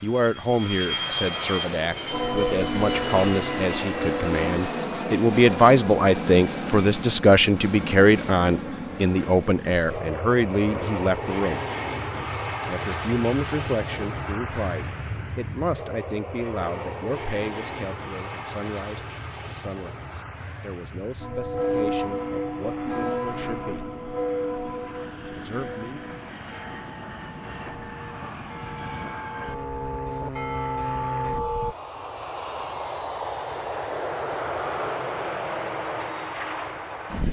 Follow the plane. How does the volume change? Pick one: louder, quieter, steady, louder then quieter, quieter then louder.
quieter then louder.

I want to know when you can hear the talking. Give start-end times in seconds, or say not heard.
0.0-11.6, 12.7-23.9, 25.4-26.0.